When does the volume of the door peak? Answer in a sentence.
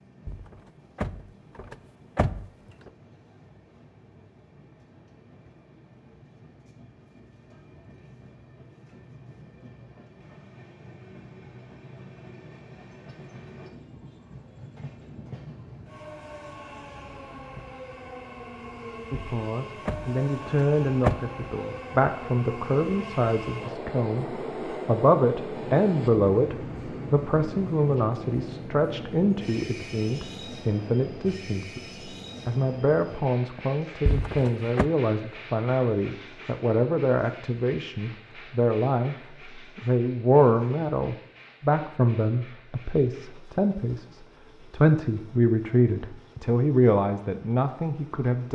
The loudest moment of the door is at 21 seconds.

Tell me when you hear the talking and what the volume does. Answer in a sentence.
You can hear the talking from 19.1 to 48.5 s, at a steady volume.